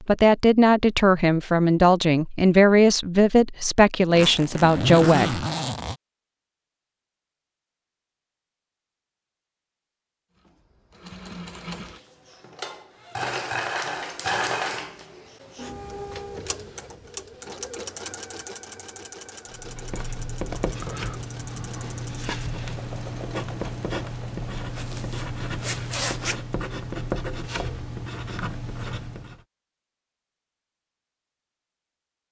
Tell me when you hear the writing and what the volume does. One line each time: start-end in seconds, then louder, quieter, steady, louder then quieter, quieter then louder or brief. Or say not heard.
19.5-29.4 steady.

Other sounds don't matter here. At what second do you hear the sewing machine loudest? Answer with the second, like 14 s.
14 s.